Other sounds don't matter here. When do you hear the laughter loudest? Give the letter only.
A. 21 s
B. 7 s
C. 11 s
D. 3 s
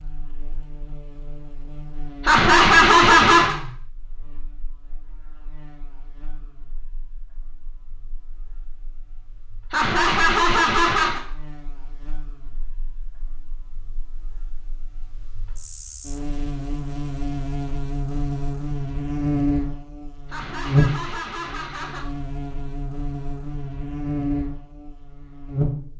D.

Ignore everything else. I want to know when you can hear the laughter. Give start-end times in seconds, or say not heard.
2.2-3.5, 9.7-11.2, 20.2-22.1.